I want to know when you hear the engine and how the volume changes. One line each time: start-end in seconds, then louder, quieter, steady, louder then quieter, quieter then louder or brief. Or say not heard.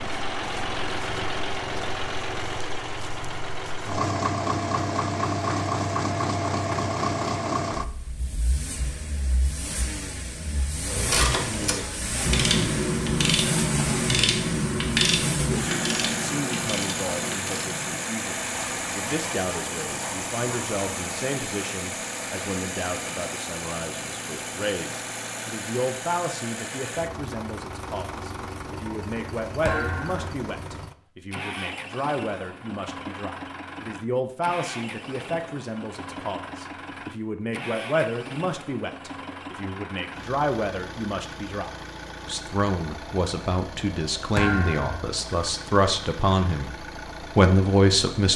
0.0-48.3 quieter.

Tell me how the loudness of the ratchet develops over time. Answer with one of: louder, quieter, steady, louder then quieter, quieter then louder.
quieter.